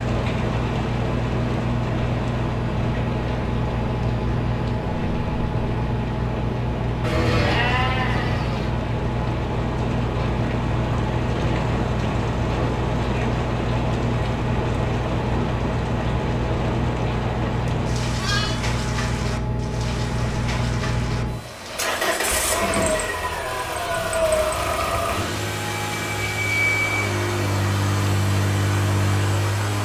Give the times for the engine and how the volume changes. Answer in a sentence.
You can hear the engine from 0.0 to 29.8 s, at a steady volume.